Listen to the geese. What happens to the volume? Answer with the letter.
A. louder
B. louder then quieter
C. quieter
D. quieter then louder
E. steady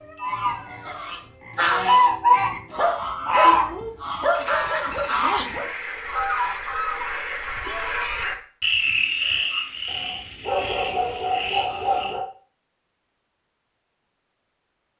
C.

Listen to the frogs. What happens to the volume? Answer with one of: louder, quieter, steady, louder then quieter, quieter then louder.
louder then quieter.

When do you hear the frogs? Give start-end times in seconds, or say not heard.
0.0-12.2.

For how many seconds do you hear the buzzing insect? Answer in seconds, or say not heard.
not heard.